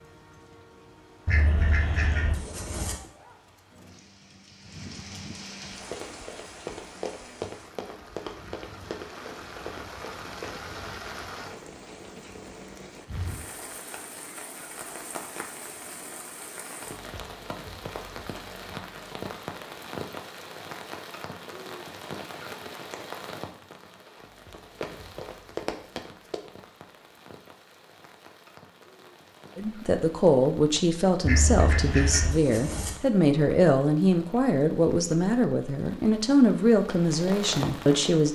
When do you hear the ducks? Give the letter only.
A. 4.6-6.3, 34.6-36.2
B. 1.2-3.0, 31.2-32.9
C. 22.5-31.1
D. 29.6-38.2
B.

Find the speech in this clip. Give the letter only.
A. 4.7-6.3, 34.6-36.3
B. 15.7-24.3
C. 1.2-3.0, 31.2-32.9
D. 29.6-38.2
D.